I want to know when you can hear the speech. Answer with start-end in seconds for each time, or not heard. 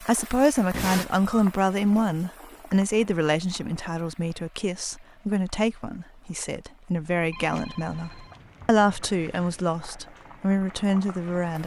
0.0-11.6.